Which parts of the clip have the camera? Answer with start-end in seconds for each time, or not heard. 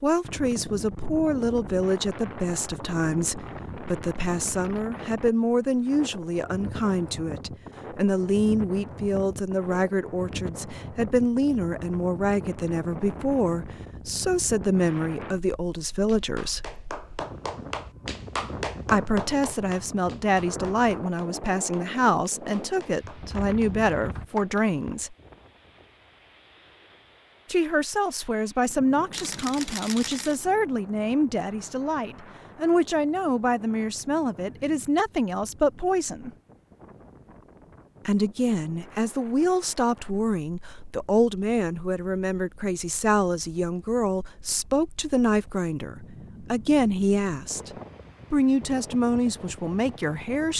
29.1-30.4.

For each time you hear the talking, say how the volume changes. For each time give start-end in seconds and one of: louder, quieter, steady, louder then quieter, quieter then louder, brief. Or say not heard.
0.0-16.8 steady
18.9-25.1 steady
27.4-36.3 steady
38.0-47.7 steady
48.3-50.5 brief.